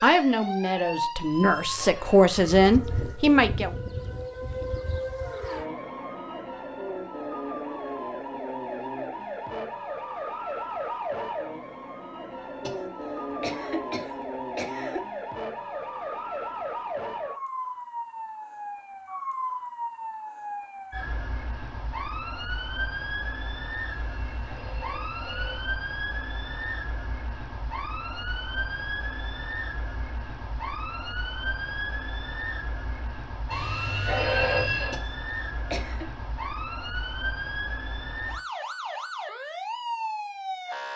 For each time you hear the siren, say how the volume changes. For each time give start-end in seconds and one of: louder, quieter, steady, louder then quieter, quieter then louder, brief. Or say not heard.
0.0-40.9 steady.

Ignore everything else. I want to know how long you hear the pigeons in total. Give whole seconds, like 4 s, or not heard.
not heard.